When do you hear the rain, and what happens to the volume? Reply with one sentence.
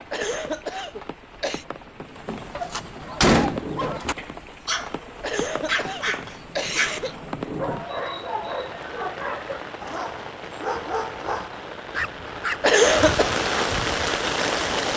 You can hear the rain from 0.0 to 14.9 s, getting louder.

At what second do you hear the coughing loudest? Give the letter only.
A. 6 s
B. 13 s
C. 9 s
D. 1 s
B.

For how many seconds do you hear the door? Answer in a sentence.
The door can be heard for 2 seconds in total.